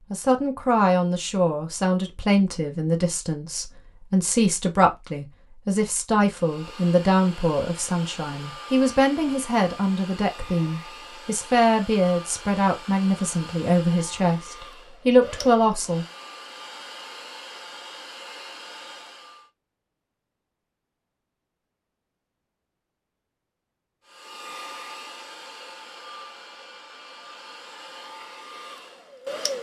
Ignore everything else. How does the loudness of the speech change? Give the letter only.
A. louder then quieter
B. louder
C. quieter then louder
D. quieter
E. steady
E.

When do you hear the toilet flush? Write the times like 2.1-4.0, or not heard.
not heard.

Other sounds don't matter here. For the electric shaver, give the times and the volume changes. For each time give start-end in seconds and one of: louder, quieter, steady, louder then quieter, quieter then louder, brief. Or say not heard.
not heard.